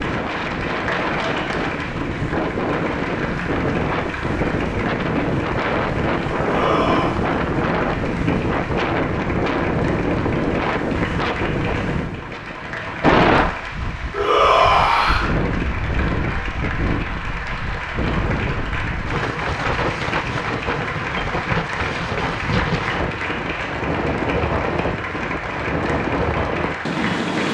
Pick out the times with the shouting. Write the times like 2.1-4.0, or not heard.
6.4-7.2, 14.1-15.2.